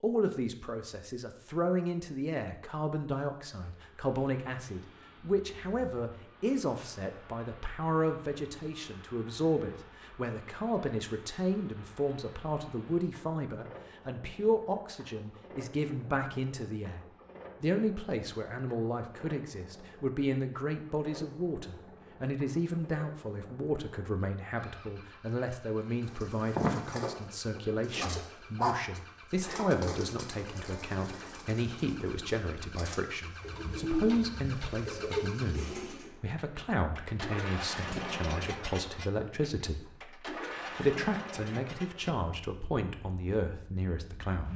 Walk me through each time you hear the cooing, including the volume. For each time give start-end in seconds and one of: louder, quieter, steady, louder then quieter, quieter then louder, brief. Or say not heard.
26.1-36.1 quieter then louder.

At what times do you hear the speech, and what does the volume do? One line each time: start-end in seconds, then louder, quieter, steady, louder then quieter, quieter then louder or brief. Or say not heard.
0.0-44.5 steady.